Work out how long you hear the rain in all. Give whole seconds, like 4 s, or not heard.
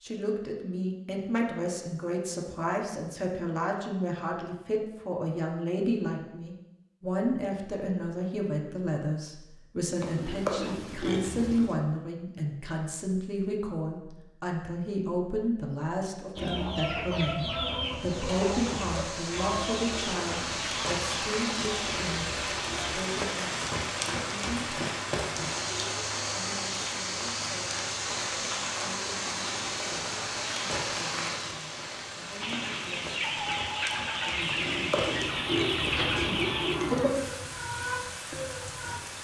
21 s.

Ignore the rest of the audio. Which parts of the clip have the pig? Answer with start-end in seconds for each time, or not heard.
10.0-11.8, 34.5-37.1.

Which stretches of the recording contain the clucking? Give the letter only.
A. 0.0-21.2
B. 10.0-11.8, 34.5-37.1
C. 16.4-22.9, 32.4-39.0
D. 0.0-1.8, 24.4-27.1
C.